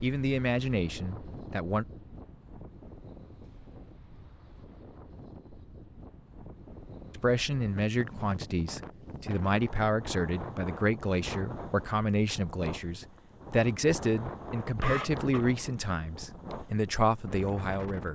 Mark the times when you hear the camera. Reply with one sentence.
You can hear the camera from 14.8 to 15.6 s.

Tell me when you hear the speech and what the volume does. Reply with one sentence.
The speech can be heard briefly from 0.0 to 1.9 s; and from 7.2 to 18.1 s, at a steady volume.